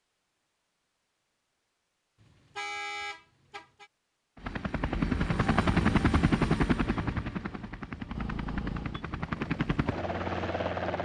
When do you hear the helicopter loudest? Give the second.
6 s.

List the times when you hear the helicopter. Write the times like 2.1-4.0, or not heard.
4.3-10.9.